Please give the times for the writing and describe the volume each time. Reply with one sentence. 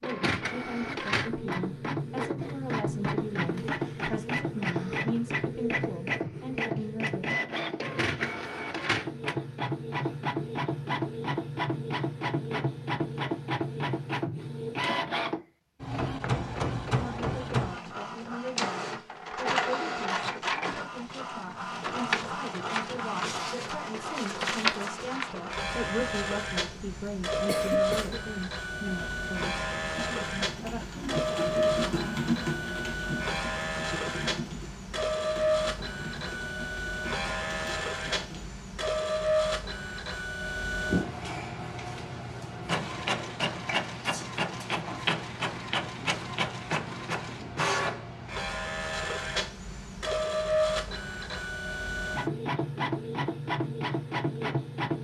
You can't hear the writing here.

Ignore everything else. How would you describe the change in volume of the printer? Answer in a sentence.
The loudness of the printer stays about the same.